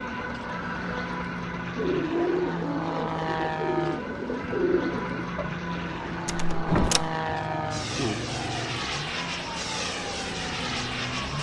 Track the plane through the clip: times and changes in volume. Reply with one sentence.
You can hear the plane from 0.0 to 11.3 s, at a steady volume.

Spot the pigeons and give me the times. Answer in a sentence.
The pigeons can be heard from 1.8 to 8.8 s.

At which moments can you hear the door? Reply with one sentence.
You can hear the door from 6.2 to 7.2 s.